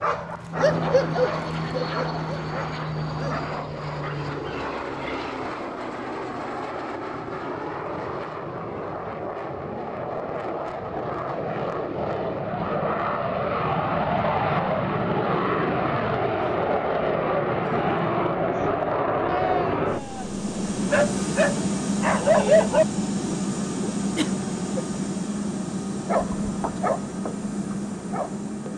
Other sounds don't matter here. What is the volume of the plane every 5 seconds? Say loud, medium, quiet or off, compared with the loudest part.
medium, medium, loud, loud, loud, medium.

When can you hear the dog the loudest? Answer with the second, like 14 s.
22 s.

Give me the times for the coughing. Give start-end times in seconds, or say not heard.
24.1-24.9.